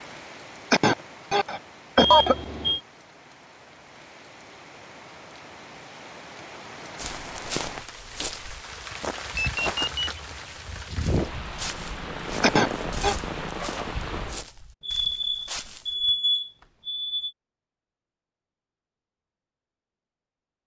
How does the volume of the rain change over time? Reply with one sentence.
The loudness of the rain goes up.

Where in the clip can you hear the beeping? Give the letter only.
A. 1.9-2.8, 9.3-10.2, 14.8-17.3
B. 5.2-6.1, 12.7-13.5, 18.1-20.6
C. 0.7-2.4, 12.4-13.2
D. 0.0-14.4
A.